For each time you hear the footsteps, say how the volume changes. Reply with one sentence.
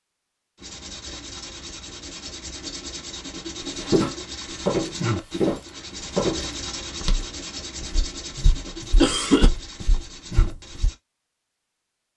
You can hear the footsteps from 3.8 to 10.9 s, getting quieter.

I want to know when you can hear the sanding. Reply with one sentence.
You can hear the sanding from 0.6 to 10.9 s.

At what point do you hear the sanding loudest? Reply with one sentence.
The loudest moment of the sanding is at 5 seconds.